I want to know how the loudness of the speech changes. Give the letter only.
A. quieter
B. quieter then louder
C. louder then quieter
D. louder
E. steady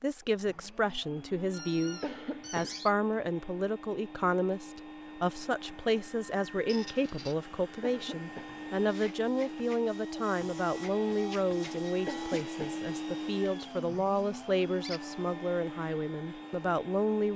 E.